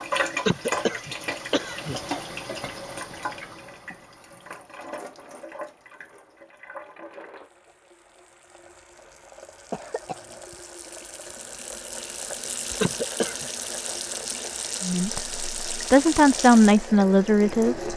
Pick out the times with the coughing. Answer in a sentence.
The coughing can be heard from 0.5 to 2.0 s, from 9.7 to 10.4 s and from 12.8 to 13.4 s.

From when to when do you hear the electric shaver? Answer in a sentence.
You can't hear the electric shaver here.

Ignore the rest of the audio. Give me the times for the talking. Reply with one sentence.
The talking can be heard from 14.8 to 17.9 s.